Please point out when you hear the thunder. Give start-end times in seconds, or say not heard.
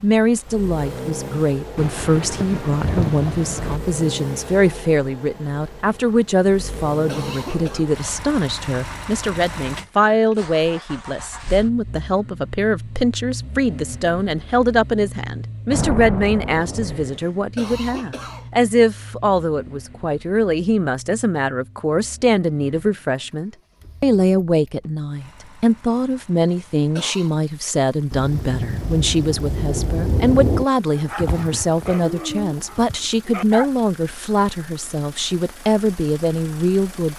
1.8-3.8, 15.7-17.2, 28.1-30.6.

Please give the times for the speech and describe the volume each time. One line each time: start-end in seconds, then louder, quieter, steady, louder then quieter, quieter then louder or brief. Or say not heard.
0.0-37.1 steady.